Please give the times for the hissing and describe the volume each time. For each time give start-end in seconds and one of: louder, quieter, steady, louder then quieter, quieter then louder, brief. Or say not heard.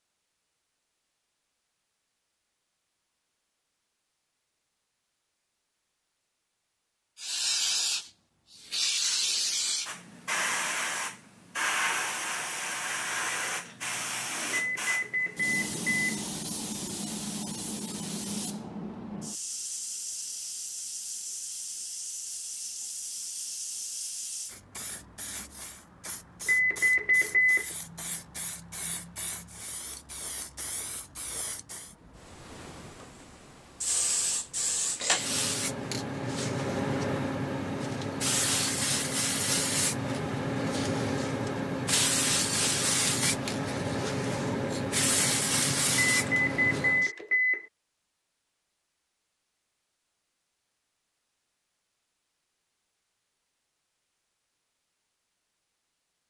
7.2-47.1 quieter then louder.